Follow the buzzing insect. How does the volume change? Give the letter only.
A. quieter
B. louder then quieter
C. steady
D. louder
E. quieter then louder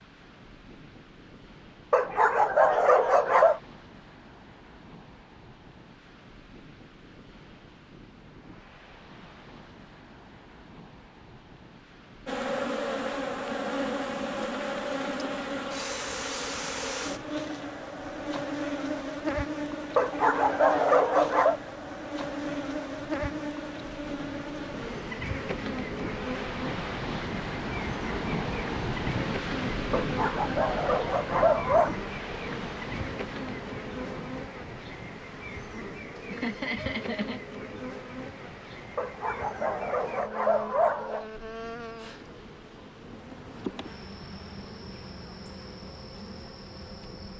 A.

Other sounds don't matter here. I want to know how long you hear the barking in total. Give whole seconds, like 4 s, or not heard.
8 s.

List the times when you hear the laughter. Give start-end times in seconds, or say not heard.
36.1-37.4.